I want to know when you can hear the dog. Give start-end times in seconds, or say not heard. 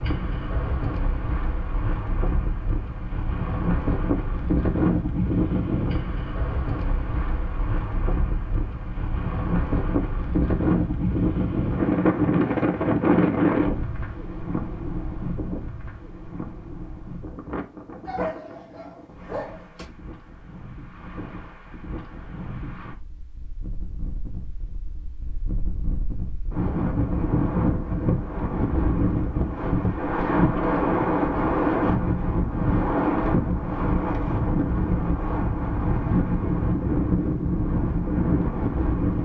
18.1-19.9.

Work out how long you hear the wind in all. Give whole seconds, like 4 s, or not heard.
39 s.